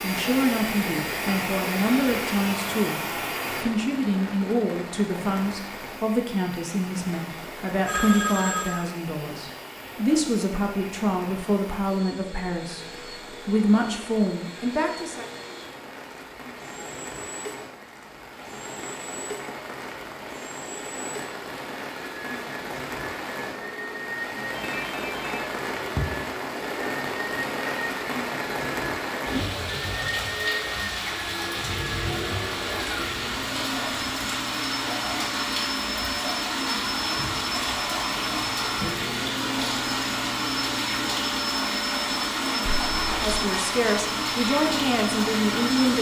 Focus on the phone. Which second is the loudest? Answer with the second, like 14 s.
8 s.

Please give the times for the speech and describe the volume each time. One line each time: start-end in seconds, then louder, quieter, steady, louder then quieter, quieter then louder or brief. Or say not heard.
0.0-15.2 steady
43.1-45.9 brief.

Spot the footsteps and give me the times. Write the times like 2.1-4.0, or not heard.
not heard.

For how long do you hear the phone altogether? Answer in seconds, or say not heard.
3 s.